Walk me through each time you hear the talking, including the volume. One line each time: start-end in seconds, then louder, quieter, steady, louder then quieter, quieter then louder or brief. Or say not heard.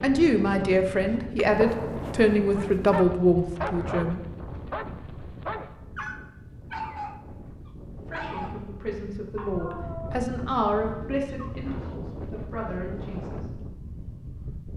0.0-4.2 steady
8.1-13.4 louder then quieter.